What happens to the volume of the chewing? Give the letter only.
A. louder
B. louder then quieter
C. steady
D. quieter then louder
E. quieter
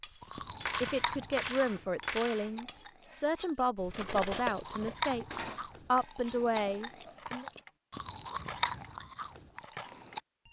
D.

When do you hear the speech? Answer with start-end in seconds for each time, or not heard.
0.1-7.5.